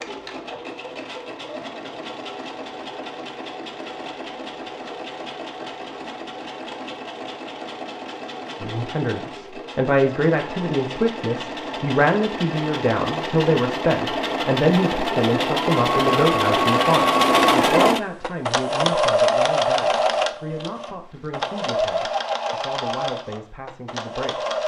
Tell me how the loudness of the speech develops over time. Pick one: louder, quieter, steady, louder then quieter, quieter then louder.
quieter.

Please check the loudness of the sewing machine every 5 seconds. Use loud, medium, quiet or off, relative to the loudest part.
quiet, quiet, medium, loud, medium.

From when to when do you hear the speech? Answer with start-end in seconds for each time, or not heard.
8.6-24.6.